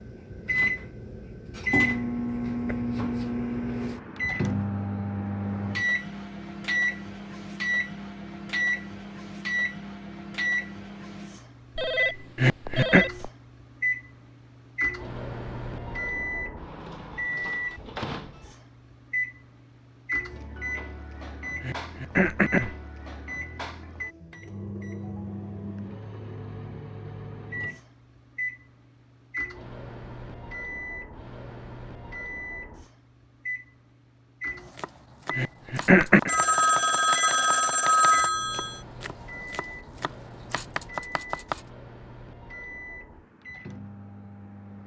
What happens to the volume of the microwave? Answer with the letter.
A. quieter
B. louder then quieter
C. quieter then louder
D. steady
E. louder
A.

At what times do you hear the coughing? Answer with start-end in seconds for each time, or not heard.
12.3-13.1, 21.6-22.8, 35.4-36.3.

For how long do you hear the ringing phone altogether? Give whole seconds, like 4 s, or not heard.
4 s.